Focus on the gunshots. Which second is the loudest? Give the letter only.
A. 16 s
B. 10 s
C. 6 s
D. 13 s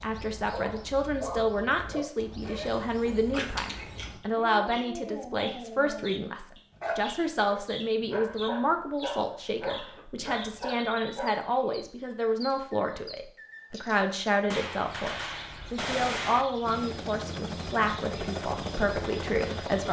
A.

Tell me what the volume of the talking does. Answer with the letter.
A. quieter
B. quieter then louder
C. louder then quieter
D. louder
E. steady
E.